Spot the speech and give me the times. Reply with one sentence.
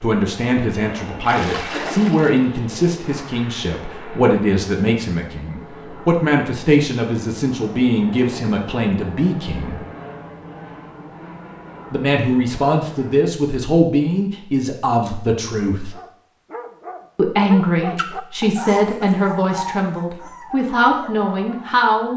You can hear the speech from 0.0 to 9.8 s, from 11.9 to 15.9 s and from 17.1 to 22.1 s.